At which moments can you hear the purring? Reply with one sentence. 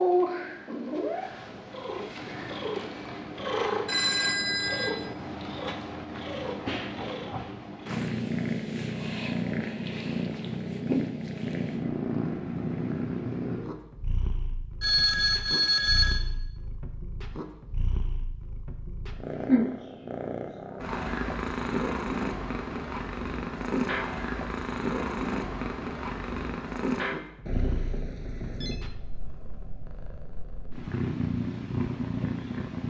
You can hear the purring from 0.0 to 32.8 s.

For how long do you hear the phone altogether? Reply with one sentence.
The phone can be heard for 4 seconds in total.